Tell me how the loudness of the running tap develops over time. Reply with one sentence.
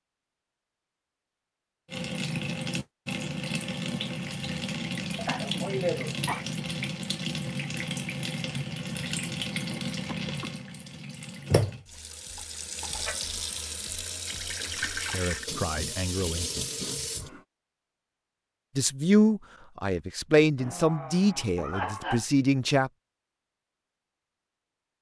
The volume of the running tap stays about the same.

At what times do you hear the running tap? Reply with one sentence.
The running tap can be heard from 1.9 to 17.4 s.